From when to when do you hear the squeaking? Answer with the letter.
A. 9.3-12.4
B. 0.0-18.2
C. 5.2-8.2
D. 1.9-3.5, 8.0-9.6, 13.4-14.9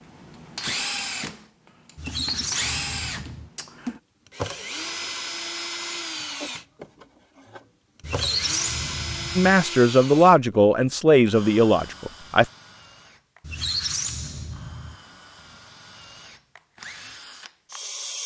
D.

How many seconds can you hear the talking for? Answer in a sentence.
The talking can be heard for 3 seconds in total.